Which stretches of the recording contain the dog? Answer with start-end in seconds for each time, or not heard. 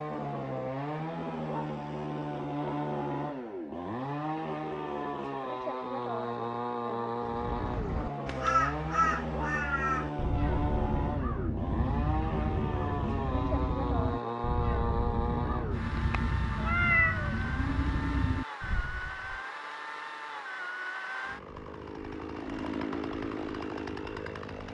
not heard.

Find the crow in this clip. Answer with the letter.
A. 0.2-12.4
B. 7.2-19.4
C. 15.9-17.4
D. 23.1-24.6
B.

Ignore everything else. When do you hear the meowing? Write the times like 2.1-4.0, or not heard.
15.9-17.4.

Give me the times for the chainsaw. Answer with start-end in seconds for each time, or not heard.
0.0-24.6.